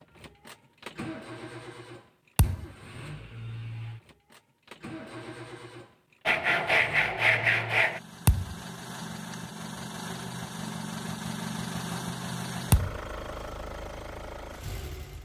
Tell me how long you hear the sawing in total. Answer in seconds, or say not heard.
2 s.